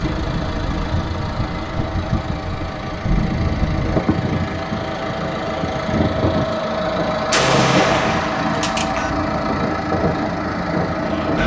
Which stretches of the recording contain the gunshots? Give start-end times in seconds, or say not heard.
7.3-9.1.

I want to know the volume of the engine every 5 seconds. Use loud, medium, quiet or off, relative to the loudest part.
medium, loud, loud.